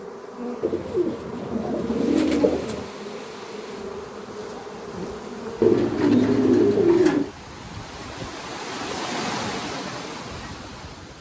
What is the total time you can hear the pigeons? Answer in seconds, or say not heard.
4 s.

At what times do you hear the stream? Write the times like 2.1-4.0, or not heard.
1.8-11.1.